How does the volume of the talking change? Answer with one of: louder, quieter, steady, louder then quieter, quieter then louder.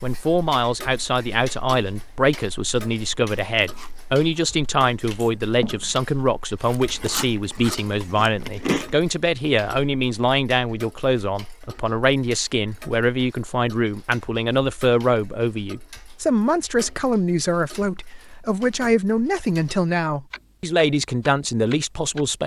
steady.